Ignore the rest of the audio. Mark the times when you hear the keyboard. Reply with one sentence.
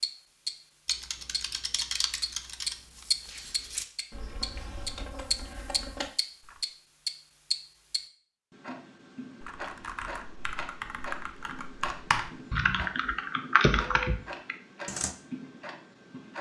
You can hear the keyboard from 0.8 to 6.7 s and from 9.4 to 15.1 s.